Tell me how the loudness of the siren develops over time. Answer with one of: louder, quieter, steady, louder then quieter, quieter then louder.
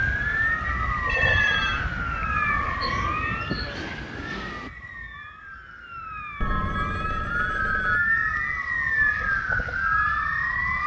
quieter then louder.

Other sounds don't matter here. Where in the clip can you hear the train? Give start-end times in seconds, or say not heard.
2.8-4.7.